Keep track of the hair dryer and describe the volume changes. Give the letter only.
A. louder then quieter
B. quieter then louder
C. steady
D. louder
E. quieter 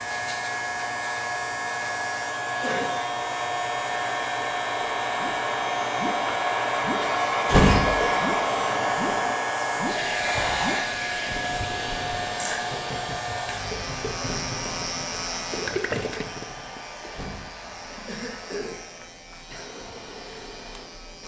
A.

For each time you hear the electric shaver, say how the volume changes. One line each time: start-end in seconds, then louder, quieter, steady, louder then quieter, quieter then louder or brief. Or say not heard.
0.0-21.2 quieter.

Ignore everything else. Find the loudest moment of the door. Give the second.
8 s.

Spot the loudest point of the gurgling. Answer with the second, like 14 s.
16 s.